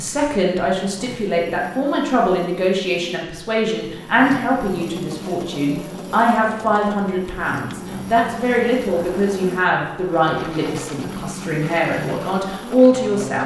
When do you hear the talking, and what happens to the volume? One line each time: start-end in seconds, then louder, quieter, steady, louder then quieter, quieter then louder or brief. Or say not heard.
0.0-13.4 steady.